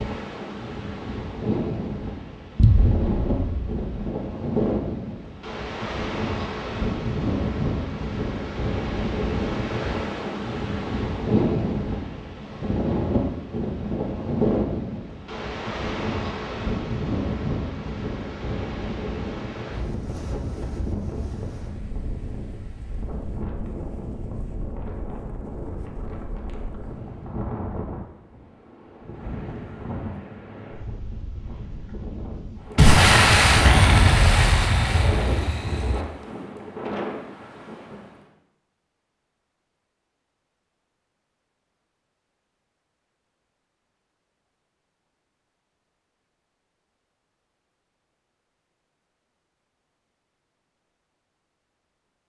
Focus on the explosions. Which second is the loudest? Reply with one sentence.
The loudest moment of the explosions is at 33 seconds.